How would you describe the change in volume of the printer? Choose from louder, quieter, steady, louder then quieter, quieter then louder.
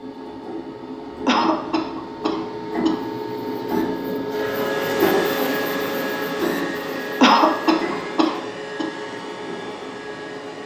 louder then quieter.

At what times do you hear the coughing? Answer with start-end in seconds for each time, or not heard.
1.2-3.0, 7.2-8.8.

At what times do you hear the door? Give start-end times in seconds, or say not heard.
not heard.